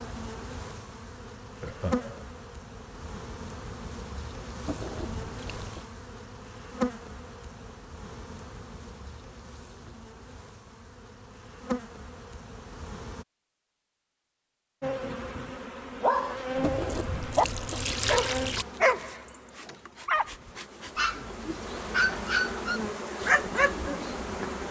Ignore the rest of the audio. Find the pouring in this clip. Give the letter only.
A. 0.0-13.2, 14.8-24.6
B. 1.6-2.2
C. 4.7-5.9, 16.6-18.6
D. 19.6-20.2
C.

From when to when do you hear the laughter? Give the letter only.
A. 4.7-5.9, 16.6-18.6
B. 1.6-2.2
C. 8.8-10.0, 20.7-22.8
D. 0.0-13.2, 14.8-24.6
B.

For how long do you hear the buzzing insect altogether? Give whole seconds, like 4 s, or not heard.
23 s.